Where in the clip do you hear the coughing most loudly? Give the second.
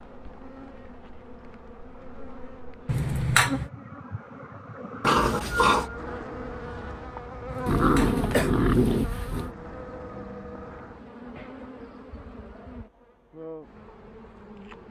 3 s.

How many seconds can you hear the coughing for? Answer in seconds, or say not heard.
2 s.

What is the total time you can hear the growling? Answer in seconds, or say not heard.
3 s.